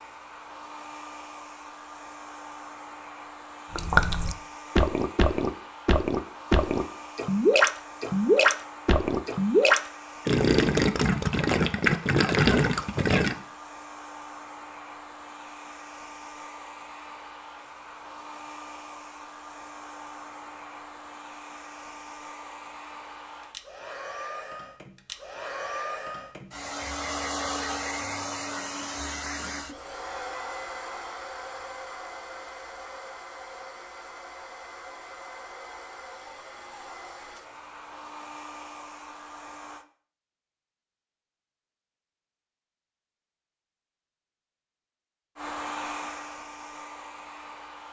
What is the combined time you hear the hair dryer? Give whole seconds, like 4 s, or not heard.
42 s.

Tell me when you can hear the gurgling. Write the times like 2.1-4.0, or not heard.
3.7-13.3.